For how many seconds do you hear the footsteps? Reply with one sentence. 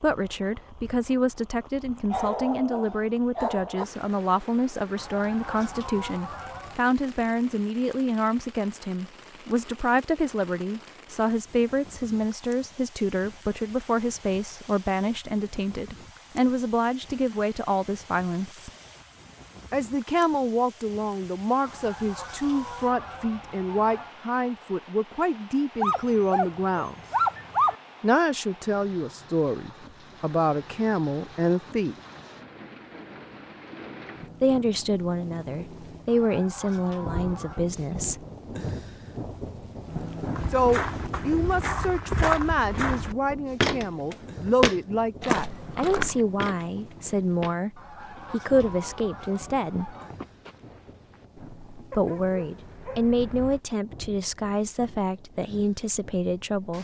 The footsteps can be heard for 11 seconds in total.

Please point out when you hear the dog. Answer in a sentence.
You can hear the dog from 2.1 to 3.9 s, from 25.8 to 27.8 s and from 51.9 to 53.6 s.